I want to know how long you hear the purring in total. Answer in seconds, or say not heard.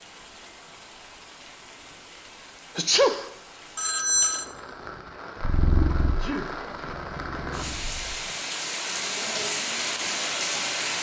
3 s.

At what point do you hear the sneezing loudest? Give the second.
3 s.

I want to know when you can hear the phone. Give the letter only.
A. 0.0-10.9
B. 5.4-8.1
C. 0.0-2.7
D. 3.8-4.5
D.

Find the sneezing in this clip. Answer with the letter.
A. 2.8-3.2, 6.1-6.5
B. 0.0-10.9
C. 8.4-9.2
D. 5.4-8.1
A.